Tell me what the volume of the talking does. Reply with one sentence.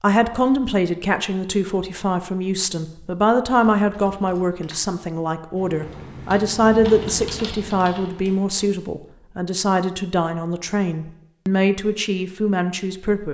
The loudness of the talking stays about the same.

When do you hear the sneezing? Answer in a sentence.
The sneezing can't be heard in this clip.